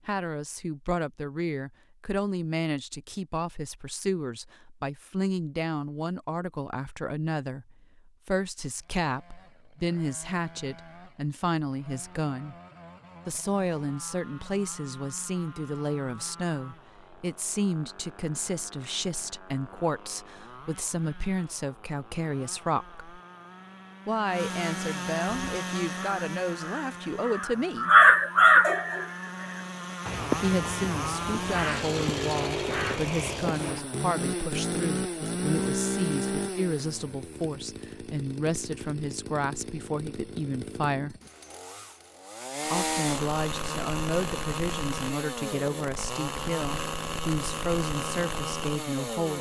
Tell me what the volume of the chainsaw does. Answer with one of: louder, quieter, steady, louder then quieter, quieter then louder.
louder.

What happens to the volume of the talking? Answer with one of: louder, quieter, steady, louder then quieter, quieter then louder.
steady.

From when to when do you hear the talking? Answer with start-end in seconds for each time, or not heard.
0.1-12.6, 13.2-23.0, 24.1-27.9, 30.4-41.1, 42.6-49.3.